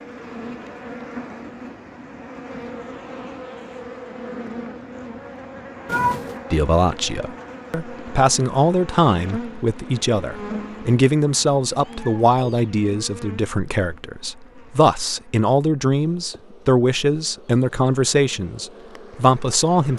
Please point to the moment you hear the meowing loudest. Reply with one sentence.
The loudest moment of the meowing is at 6 seconds.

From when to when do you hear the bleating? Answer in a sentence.
You can't hear the bleating here.